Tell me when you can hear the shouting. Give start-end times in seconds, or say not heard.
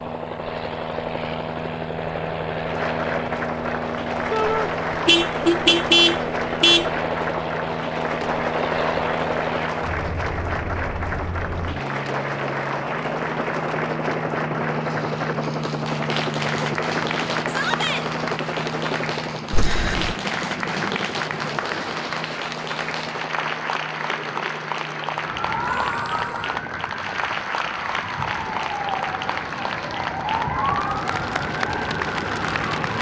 4.3-4.7, 17.4-18.1, 25.6-26.5.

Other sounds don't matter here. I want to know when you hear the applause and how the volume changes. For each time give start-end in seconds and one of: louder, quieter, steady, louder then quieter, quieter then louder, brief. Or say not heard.
2.6-32.9 steady.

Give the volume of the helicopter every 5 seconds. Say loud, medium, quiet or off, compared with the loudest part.
loud, loud, loud, loud, medium, quiet, medium.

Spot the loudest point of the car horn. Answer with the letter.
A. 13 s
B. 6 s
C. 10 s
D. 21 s
B.